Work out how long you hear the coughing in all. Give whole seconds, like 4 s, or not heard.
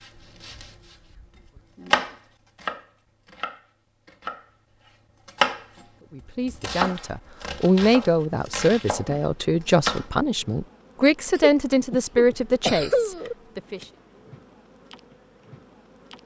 2 s.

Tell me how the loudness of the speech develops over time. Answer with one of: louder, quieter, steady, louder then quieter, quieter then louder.
steady.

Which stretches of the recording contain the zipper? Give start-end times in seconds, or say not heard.
not heard.